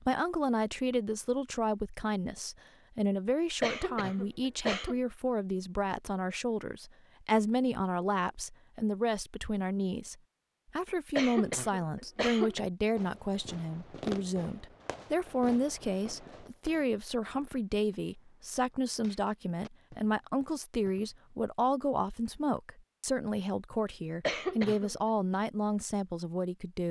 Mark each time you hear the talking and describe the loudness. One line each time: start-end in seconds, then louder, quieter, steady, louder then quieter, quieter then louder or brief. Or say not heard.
0.0-10.2 steady
10.8-26.8 steady.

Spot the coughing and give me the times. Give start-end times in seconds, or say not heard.
3.6-5.0, 11.2-12.6, 24.2-24.9.